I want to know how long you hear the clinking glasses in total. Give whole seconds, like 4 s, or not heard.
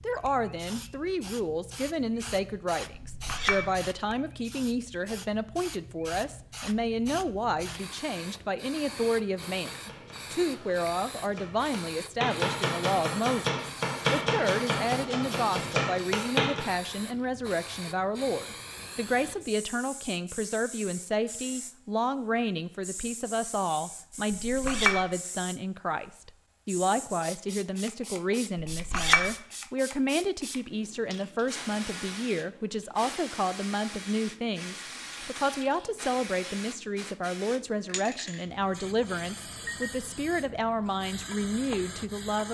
2 s.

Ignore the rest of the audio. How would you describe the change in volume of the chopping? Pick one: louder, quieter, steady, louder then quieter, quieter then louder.
louder.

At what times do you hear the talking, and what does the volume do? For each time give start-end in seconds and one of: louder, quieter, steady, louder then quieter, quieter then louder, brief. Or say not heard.
0.0-42.4 steady.